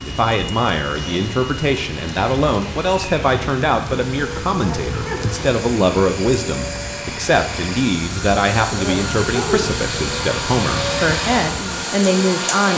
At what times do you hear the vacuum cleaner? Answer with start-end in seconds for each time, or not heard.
0.0-12.7.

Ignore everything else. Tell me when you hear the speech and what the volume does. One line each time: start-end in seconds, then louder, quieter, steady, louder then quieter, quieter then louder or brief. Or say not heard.
0.0-12.7 steady.